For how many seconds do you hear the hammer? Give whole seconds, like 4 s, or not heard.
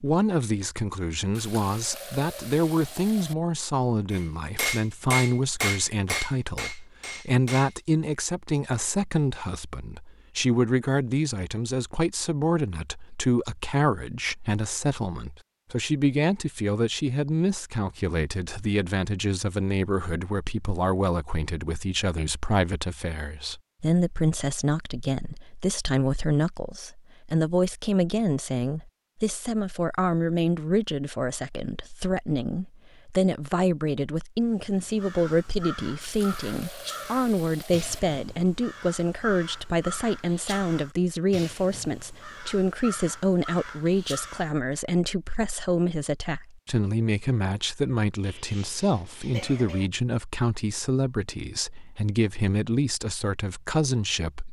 4 s.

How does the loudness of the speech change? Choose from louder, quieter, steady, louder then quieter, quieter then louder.
steady.